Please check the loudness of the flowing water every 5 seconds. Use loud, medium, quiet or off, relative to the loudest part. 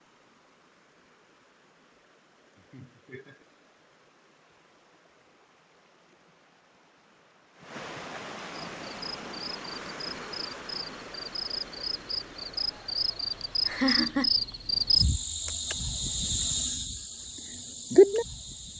quiet, loud, loud, off.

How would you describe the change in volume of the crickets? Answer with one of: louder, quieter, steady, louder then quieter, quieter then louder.
louder.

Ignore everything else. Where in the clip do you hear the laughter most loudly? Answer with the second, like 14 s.
14 s.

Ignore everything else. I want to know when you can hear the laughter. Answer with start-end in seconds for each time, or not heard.
2.5-3.5, 7.6-8.8, 13.7-14.3.